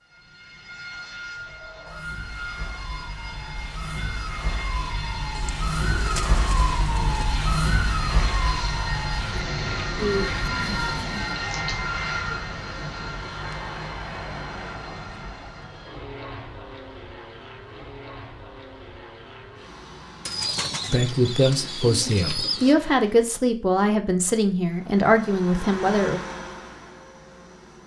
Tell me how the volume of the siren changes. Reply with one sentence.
The volume of the siren goes up, then down.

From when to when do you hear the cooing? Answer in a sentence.
You can hear the cooing from 5.3 to 7.3 s, from 9.9 to 11.3 s and from 20.2 to 22.8 s.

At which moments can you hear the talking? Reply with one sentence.
The talking can be heard from 20.9 to 26.2 s.